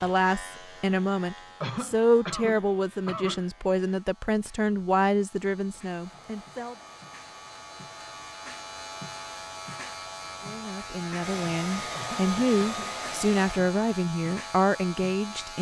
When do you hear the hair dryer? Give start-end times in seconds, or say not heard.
5.9-13.7.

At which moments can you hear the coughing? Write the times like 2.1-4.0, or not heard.
1.6-3.5, 11.9-13.0.